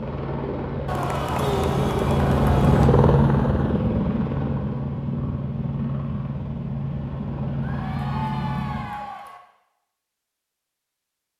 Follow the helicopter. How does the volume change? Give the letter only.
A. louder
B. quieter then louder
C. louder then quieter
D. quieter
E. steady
C.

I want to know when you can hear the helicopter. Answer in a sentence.
The helicopter can be heard from 0.0 to 8.9 s.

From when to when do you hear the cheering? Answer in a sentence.
You can hear the cheering from 0.8 to 2.9 s and from 7.6 to 9.4 s.